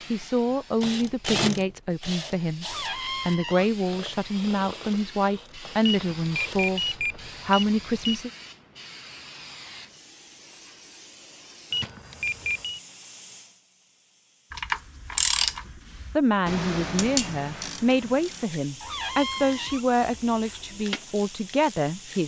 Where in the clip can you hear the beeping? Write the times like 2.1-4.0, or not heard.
5.8-8.2, 11.7-12.8.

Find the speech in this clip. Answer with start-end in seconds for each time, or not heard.
0.1-8.3, 16.1-22.2.